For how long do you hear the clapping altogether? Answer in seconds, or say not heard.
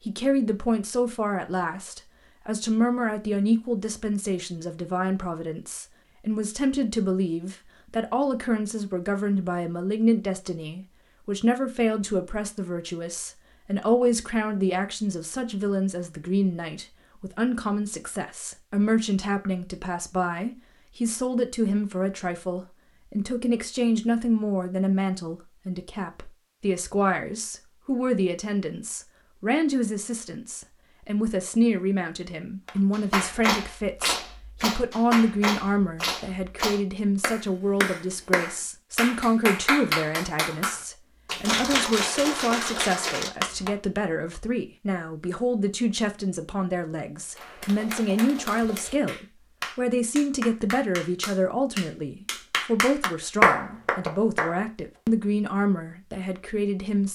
18 s.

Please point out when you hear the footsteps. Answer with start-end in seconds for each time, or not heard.
not heard.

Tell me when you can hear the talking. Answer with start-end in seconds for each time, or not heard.
0.0-57.1.